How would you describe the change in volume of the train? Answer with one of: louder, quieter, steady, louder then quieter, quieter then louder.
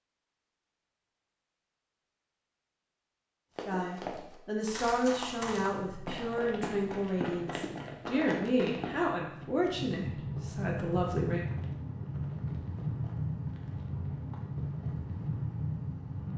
louder.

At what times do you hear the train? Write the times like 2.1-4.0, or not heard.
5.0-16.3.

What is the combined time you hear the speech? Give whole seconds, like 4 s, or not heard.
8 s.